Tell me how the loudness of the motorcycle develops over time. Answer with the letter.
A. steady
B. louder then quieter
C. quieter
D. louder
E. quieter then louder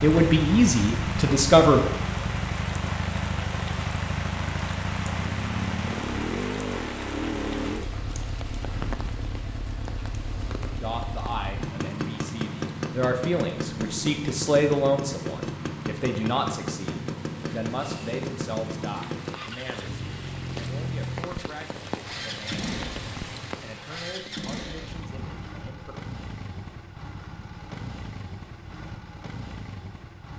C.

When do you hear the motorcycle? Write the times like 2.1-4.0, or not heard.
0.0-30.3.